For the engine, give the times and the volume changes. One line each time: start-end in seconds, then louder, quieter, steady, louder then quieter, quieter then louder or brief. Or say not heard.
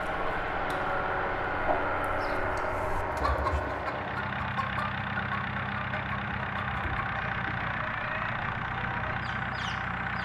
0.0-10.1 steady.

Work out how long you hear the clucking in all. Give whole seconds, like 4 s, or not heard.
10 s.